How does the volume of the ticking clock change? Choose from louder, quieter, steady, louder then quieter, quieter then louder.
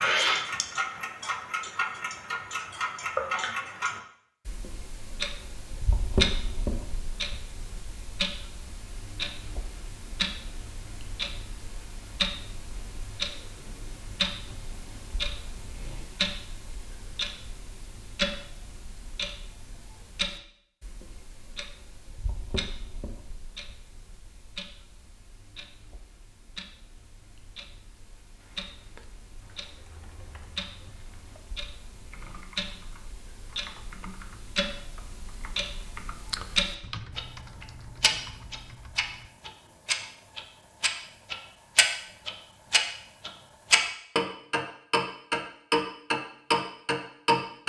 quieter then louder.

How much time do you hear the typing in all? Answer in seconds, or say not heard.
11 s.